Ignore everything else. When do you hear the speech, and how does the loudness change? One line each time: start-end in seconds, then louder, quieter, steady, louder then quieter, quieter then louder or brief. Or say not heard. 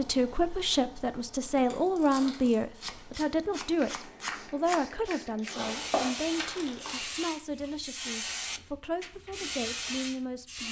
0.0-10.6 quieter.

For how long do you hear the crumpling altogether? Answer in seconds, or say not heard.
3 s.